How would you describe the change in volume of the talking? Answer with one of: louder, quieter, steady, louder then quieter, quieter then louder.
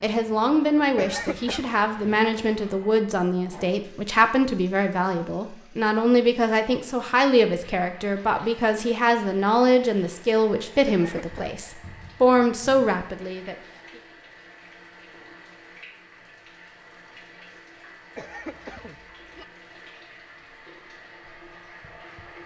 steady.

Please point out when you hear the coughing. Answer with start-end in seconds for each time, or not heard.
0.9-1.7, 10.8-11.6, 18.1-19.4.